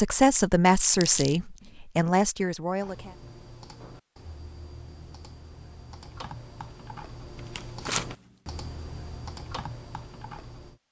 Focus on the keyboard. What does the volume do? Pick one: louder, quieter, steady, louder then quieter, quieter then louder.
louder.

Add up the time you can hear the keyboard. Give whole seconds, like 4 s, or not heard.
8 s.